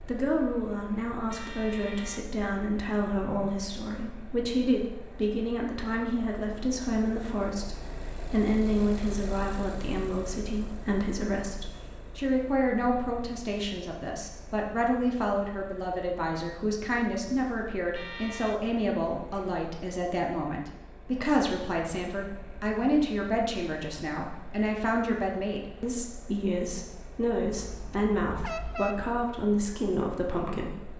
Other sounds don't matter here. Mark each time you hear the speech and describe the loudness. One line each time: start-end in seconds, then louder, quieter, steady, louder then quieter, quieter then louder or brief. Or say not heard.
0.0-30.9 steady.